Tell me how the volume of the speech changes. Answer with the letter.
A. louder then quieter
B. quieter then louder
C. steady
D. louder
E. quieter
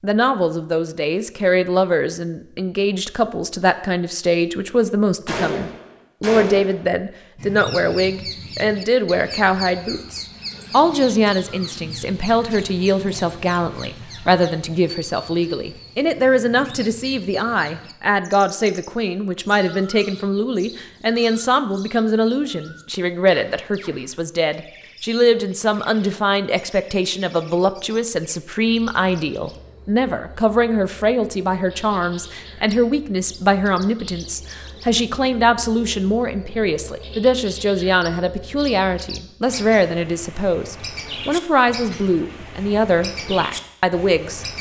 C.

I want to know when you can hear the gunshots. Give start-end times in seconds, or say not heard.
5.2-6.8.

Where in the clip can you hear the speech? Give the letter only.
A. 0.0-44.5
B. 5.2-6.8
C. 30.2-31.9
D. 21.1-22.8
A.